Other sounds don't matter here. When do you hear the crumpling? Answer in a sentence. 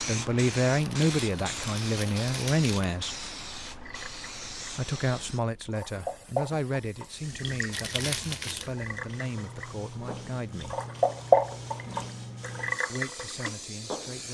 You can hear the crumpling from 0.8 to 3.0 s and from 7.7 to 8.7 s.